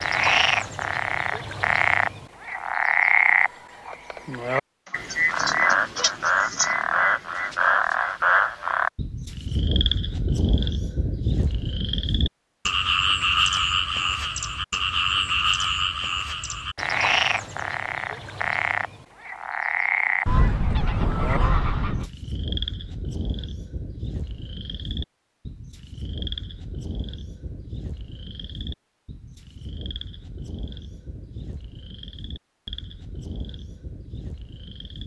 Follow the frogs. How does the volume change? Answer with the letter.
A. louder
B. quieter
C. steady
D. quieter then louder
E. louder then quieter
B.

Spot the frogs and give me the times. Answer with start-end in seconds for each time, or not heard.
0.0-35.0.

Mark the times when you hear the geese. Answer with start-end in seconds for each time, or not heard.
5.0-6.7, 20.2-22.1.